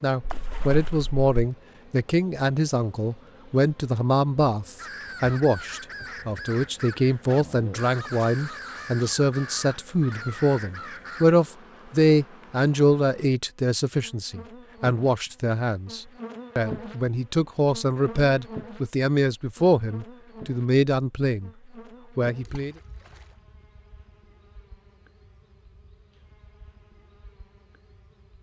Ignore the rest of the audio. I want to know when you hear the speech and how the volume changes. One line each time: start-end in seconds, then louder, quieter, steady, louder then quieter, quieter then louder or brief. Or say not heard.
0.0-21.5 steady
22.1-22.8 brief.